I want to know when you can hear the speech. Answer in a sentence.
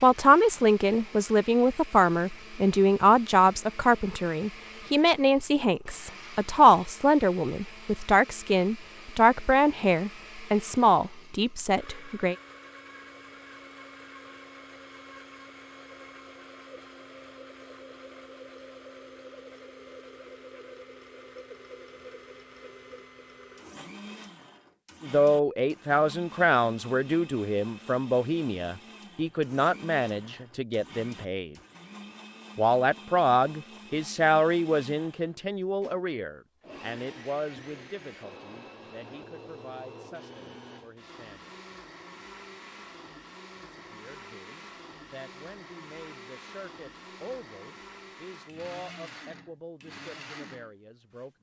The speech can be heard from 0.0 to 12.3 s, from 25.0 to 31.6 s, from 32.5 to 41.5 s and from 43.6 to 51.3 s.